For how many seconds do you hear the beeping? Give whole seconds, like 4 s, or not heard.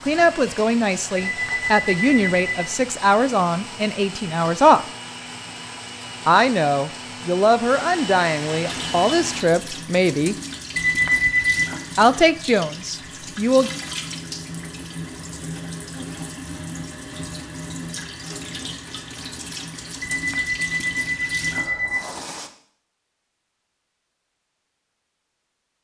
4 s.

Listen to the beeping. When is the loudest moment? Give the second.
11 s.